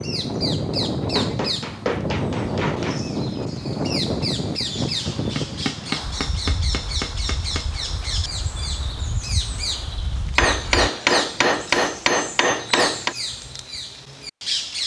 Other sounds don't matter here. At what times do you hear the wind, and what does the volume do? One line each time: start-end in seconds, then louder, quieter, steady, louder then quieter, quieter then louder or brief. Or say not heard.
0.0-10.9 quieter.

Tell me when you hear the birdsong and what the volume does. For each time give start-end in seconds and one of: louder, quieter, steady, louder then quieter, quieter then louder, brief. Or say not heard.
0.0-14.8 steady.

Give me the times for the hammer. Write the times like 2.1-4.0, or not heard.
1.0-3.1, 5.0-7.7, 10.3-13.2.